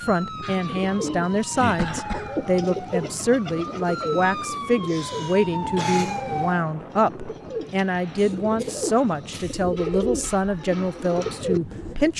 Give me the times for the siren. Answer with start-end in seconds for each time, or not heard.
0.0-6.7.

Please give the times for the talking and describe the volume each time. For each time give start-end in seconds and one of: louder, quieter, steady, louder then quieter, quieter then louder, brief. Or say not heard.
0.0-12.1 steady.